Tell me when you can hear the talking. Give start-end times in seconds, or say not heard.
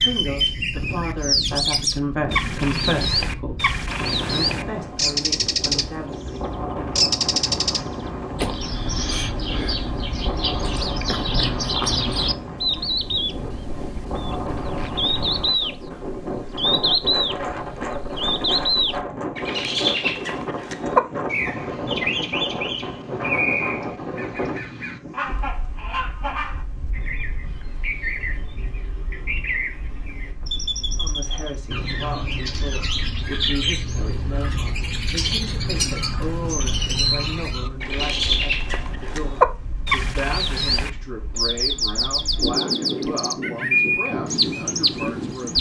0.0-3.6, 4.3-6.5, 30.9-45.5.